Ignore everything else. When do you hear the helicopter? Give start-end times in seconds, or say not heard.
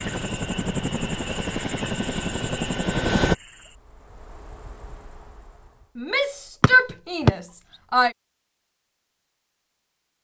0.0-3.4.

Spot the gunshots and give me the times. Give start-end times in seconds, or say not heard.
not heard.